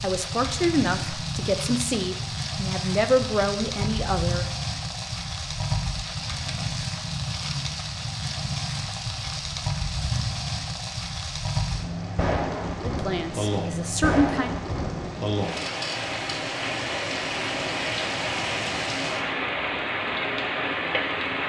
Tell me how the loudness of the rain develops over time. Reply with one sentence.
The volume of the rain stays about the same.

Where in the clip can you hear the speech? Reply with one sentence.
The speech can be heard from 0.0 to 4.5 s and from 12.8 to 14.5 s.